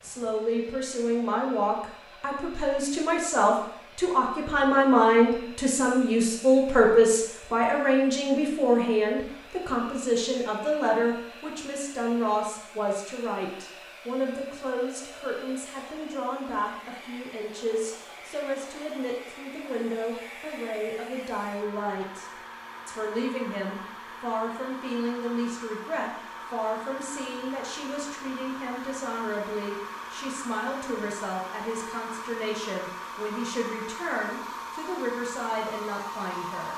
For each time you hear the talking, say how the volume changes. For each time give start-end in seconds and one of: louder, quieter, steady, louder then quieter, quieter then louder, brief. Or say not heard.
0.0-36.7 quieter.